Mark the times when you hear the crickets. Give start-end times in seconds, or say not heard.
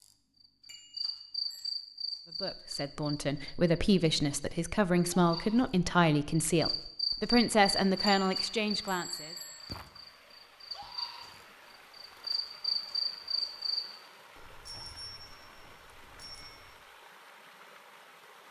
0.0-13.8.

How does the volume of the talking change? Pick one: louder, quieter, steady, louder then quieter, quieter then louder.
steady.